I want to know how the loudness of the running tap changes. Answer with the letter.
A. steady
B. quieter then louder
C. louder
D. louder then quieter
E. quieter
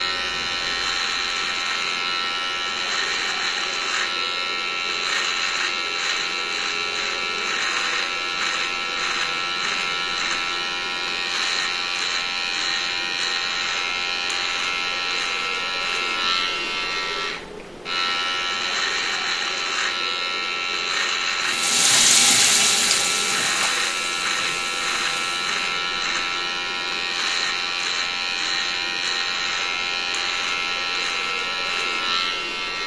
E.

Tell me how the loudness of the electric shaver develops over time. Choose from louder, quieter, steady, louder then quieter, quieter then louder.
steady.